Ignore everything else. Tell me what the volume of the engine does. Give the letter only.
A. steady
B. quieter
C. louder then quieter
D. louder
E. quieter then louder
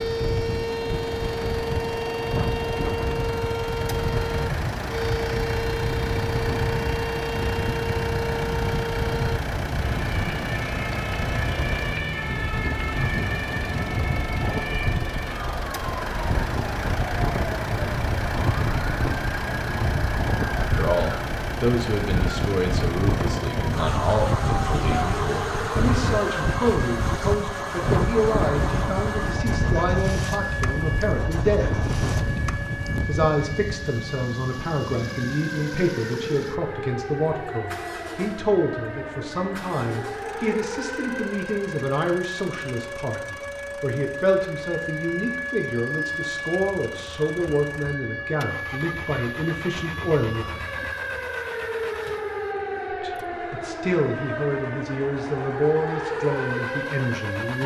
B.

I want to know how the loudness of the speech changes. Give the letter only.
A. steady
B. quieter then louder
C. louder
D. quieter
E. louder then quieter
A.